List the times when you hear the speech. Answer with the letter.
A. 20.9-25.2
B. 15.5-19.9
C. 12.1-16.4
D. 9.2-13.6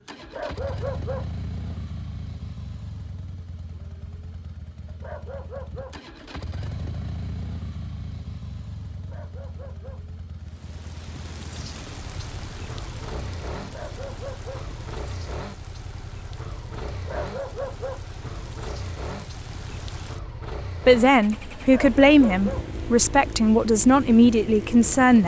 A.